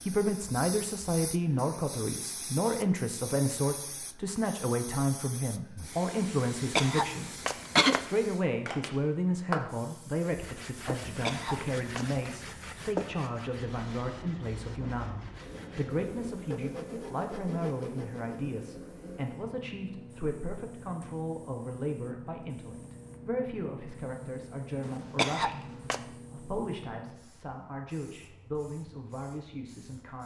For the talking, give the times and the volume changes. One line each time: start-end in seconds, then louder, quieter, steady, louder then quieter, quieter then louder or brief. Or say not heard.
0.0-30.2 quieter.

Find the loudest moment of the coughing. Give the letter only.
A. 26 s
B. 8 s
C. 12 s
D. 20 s
B.